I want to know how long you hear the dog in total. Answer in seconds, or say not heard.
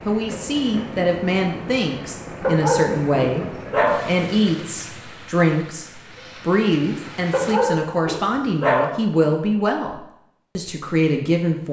4 s.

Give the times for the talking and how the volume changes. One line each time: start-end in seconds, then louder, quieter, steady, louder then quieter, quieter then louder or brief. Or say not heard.
0.1-11.6 steady.